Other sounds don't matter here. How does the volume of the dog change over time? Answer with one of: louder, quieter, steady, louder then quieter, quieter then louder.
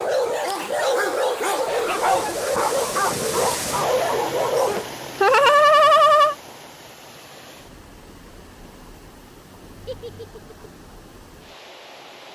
steady.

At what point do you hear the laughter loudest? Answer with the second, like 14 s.
6 s.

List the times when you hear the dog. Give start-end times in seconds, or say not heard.
0.0-4.9.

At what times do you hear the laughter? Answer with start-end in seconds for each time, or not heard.
1.6-2.1, 4.7-6.3, 9.8-10.6.